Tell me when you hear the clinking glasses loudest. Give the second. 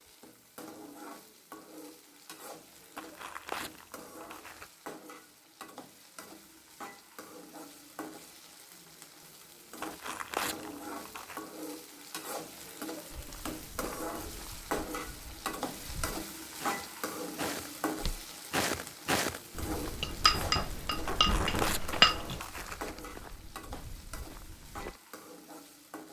22 s.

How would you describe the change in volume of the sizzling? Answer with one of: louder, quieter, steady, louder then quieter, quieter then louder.
louder then quieter.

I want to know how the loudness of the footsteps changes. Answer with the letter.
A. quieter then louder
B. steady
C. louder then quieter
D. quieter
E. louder
C.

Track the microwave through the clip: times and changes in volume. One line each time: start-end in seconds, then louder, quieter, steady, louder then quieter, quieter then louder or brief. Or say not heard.
not heard.